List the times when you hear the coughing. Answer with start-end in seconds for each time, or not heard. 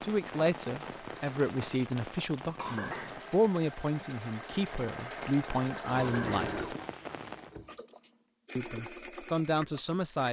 2.5-3.2, 5.9-6.4.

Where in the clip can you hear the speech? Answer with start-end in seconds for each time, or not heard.
0.0-6.7, 8.6-10.2.